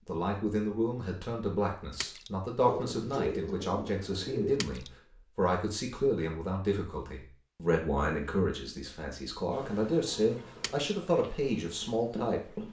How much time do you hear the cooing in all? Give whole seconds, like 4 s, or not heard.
2 s.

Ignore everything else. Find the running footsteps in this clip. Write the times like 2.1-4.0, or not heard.
11.2-12.6.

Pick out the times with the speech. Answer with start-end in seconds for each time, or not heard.
0.1-12.6.